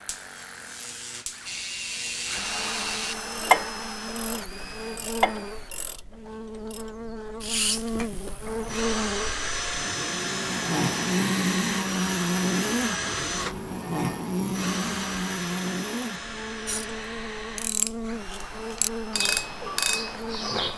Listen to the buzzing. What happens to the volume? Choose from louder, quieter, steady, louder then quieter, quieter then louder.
louder then quieter.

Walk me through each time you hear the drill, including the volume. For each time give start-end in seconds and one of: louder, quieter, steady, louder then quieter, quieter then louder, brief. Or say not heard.
0.0-5.7 louder then quieter
8.5-20.6 quieter.